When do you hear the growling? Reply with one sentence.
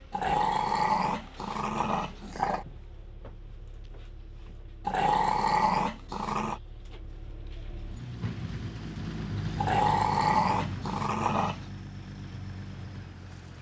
The growling can be heard from 0.1 to 2.6 s, from 4.8 to 6.6 s and from 9.6 to 11.7 s.